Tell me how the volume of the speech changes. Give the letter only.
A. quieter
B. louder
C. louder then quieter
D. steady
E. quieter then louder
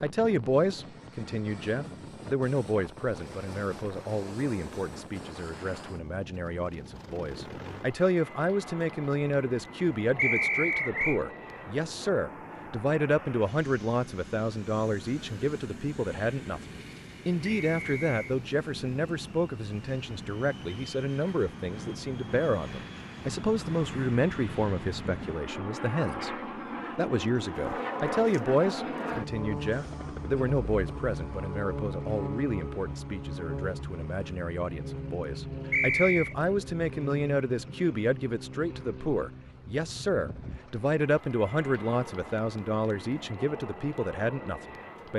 D.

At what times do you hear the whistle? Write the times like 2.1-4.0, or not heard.
10.2-11.2, 17.6-18.4, 35.7-36.4.